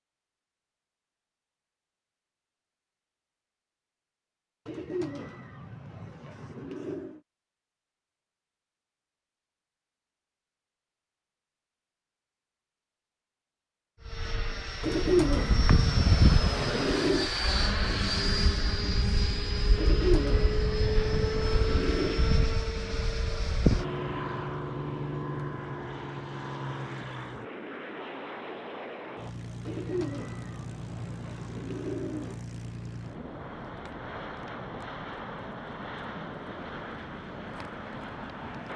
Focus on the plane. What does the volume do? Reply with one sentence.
The volume of the plane goes down.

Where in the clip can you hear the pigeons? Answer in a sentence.
The pigeons can be heard from 4.7 to 7.2 s, from 14.8 to 17.3 s, from 19.8 to 22.3 s and from 29.6 to 32.4 s.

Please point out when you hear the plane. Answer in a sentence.
The plane can be heard from 14.1 to 38.7 s.